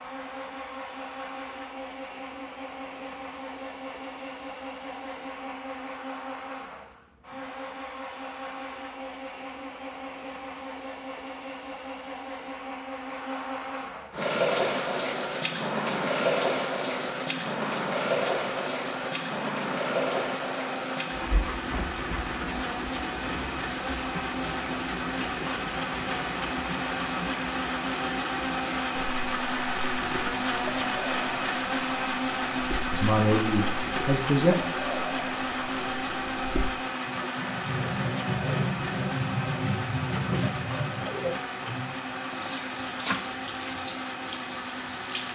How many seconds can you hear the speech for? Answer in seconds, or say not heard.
2 s.